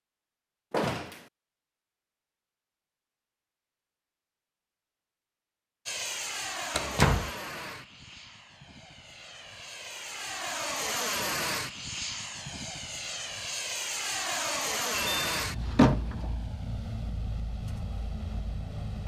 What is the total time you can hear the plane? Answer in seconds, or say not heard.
13 s.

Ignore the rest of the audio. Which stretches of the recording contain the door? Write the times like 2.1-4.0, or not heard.
0.7-1.2, 6.7-7.3, 14.9-16.4.